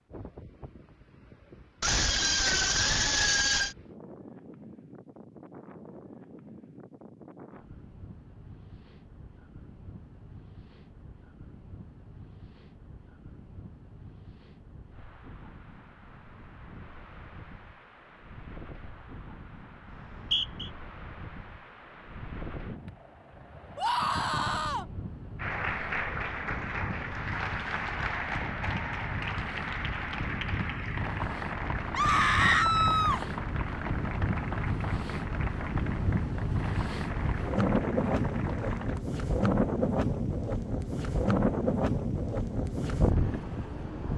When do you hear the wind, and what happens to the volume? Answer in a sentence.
The wind can be heard from 0.0 to 44.1 s, getting louder.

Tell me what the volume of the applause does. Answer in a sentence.
The volume of the applause goes down.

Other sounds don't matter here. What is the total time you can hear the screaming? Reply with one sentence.
You can hear the screaming for 4 seconds altogether.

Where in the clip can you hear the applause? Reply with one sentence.
The applause can be heard from 25.4 to 39.0 s.